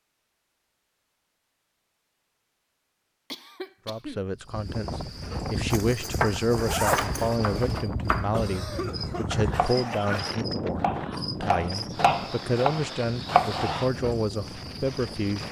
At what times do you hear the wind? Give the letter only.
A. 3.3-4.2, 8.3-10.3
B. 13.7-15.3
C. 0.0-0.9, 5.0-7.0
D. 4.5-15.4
D.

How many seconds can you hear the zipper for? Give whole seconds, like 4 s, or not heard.
2 s.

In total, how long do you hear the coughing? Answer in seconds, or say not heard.
3 s.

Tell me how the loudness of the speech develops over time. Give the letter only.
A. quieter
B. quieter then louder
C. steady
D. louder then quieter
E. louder
C.